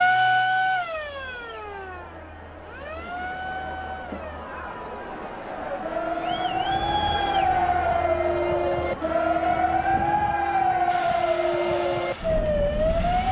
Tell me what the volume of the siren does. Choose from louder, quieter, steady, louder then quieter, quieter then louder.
quieter then louder.